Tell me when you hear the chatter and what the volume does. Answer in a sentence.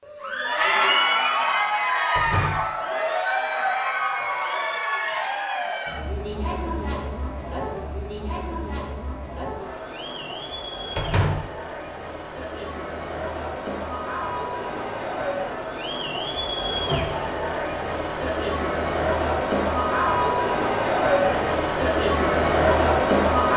You can hear the chatter from 0.1 to 23.5 s, getting quieter then louder.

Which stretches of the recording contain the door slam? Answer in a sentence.
The door slam can be heard from 2.1 to 2.7 s, from 10.9 to 11.5 s and from 16.7 to 17.2 s.